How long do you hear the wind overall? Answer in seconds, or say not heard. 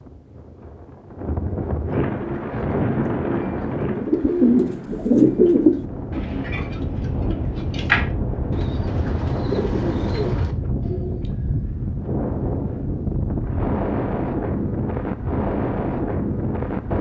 17 s.